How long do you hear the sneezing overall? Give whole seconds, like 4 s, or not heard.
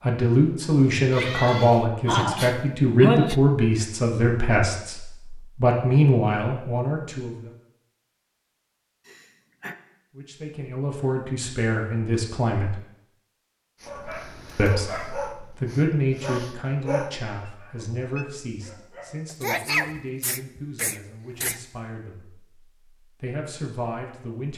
4 s.